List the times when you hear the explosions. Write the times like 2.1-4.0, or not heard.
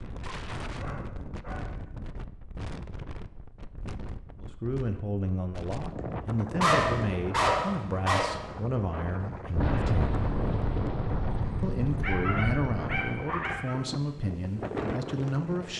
9.6-13.1.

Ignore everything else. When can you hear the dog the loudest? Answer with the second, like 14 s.
7 s.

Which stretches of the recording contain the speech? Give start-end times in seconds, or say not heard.
4.4-10.2, 11.6-15.7.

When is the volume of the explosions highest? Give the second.
10 s.